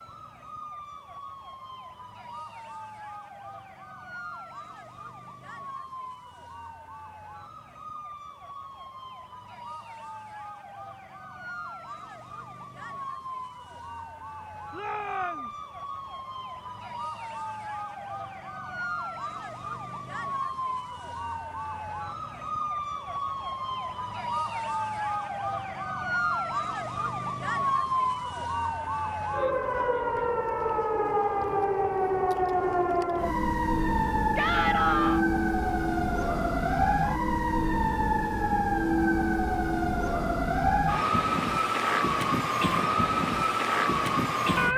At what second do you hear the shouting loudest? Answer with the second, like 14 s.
35 s.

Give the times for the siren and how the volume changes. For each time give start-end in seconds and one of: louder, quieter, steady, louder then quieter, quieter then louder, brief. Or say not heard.
0.0-44.7 louder.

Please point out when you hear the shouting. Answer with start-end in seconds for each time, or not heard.
14.7-15.5, 34.4-35.2.